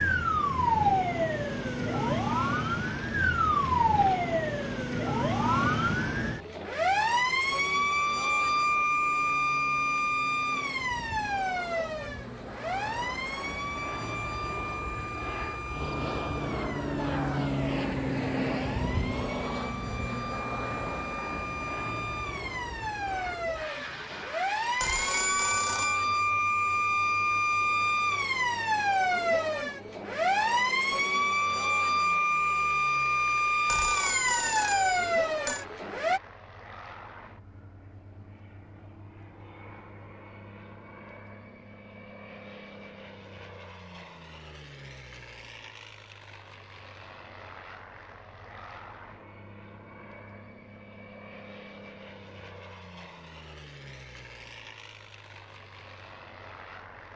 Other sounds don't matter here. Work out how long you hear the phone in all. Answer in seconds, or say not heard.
3 s.